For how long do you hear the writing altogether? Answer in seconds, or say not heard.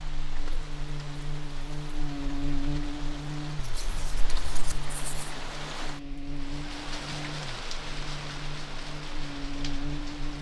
2 s.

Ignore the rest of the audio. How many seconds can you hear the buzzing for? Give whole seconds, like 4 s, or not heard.
10 s.